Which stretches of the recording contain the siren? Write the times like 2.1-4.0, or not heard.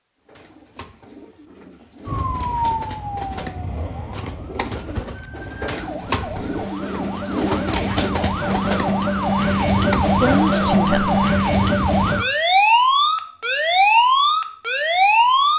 2.0-15.5.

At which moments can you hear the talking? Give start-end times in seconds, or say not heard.
10.2-11.2.